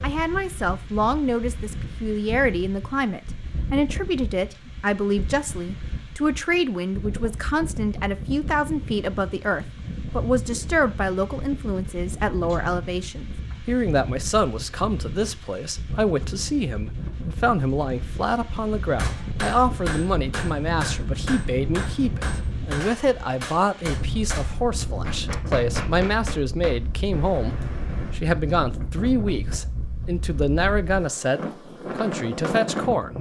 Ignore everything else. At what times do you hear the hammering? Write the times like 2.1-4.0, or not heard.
18.9-28.2.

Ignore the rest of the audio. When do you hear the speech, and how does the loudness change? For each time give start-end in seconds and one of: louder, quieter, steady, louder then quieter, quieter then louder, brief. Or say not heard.
0.0-33.1 steady.